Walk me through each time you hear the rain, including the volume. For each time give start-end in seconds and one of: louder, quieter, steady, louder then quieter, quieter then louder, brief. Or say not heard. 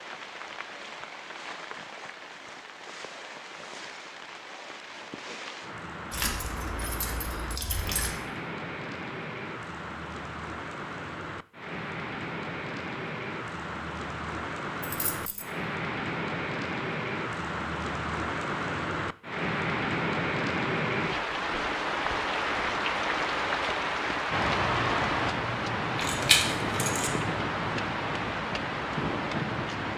0.0-29.9 louder.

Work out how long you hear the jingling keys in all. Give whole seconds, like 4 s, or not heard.
4 s.